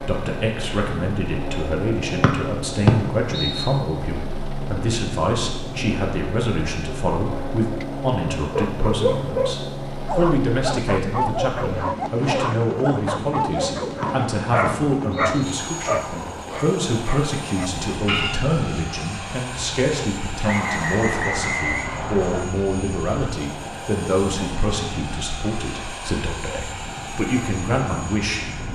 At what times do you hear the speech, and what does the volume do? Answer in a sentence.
You can hear the speech from 0.0 to 28.5 s, at a steady volume.